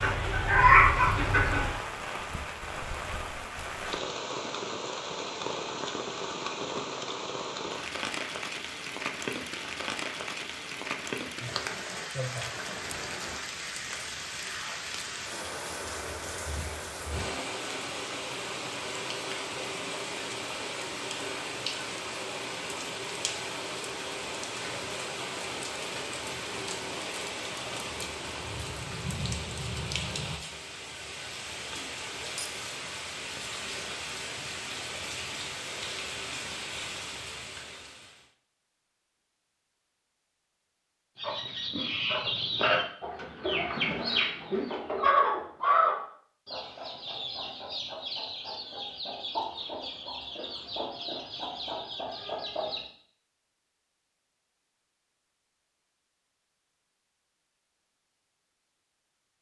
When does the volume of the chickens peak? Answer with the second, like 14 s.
1 s.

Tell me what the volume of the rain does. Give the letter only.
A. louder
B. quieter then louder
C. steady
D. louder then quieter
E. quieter
C.